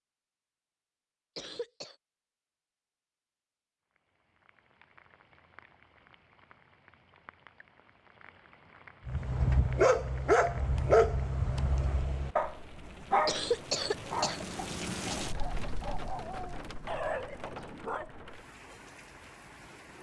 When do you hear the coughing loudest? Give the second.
14 s.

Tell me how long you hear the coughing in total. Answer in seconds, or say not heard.
2 s.